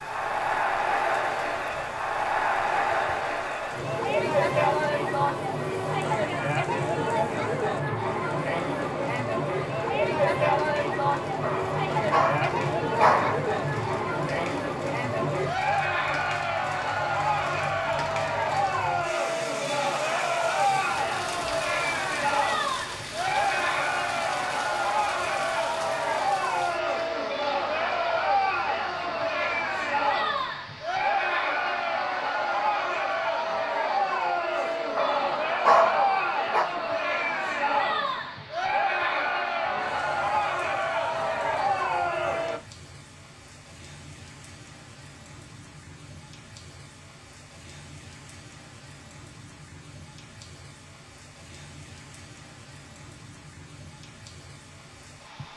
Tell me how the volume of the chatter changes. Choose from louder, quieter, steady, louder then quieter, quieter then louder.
steady.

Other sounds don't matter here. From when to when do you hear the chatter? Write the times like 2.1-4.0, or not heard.
0.0-42.6.